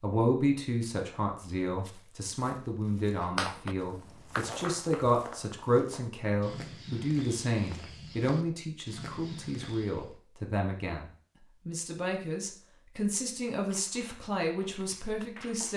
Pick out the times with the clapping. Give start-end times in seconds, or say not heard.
3.2-5.1, 13.6-15.7.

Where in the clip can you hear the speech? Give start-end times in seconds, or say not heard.
0.0-15.7.